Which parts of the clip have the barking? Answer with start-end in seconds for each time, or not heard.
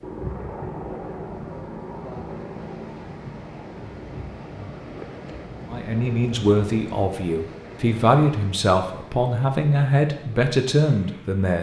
not heard.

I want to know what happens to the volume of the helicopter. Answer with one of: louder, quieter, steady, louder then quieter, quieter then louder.
quieter.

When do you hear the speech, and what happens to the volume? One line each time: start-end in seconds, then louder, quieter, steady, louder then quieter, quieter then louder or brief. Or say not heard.
5.7-11.5 steady.